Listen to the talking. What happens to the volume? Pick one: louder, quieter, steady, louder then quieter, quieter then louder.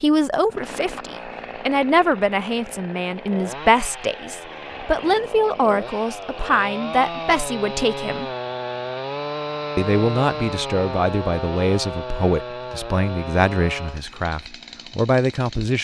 steady.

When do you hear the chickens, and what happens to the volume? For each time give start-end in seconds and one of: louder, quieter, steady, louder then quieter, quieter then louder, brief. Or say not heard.
not heard.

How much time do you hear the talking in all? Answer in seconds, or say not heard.
14 s.